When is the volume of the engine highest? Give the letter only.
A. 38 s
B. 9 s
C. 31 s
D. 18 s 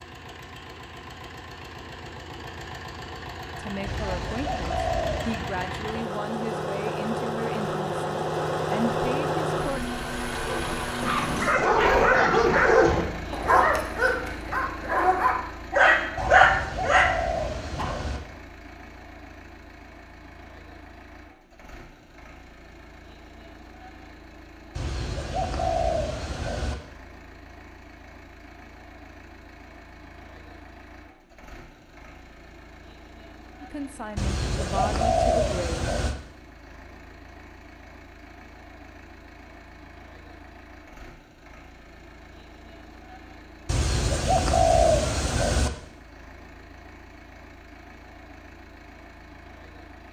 B.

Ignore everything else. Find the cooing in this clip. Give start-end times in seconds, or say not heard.
3.9-5.5, 16.1-18.2, 24.8-26.8, 34.1-36.1, 43.6-45.7.